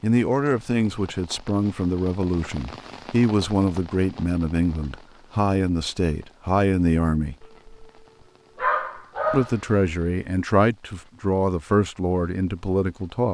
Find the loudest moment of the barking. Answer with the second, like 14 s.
9 s.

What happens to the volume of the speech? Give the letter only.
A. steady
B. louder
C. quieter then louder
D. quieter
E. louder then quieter
A.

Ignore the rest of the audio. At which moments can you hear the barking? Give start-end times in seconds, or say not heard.
7.4-10.0.